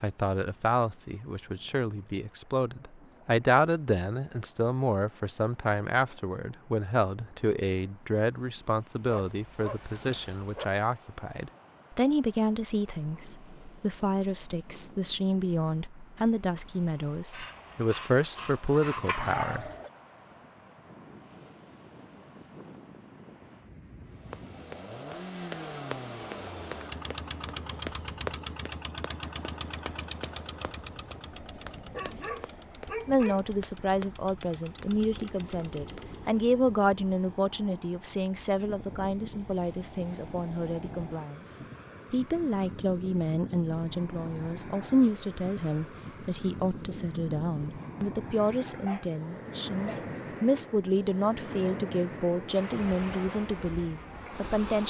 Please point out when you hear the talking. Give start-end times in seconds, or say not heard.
0.0-19.7, 33.0-54.8.